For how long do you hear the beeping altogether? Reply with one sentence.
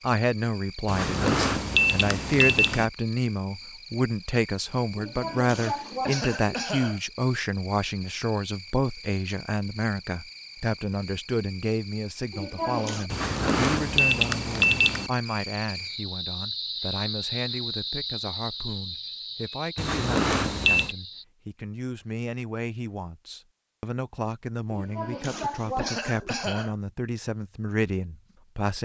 You can hear the beeping for 5 seconds altogether.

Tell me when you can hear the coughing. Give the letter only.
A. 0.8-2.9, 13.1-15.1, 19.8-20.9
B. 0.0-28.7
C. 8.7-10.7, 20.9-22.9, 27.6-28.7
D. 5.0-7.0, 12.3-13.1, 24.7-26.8
D.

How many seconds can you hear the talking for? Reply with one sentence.
You can hear the talking for 29 seconds altogether.